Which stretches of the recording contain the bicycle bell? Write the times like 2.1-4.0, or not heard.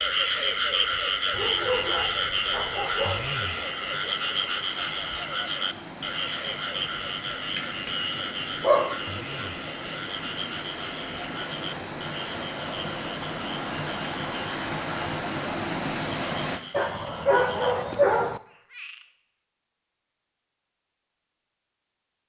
7.5-8.2.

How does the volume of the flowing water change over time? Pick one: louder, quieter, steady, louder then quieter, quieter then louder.
louder.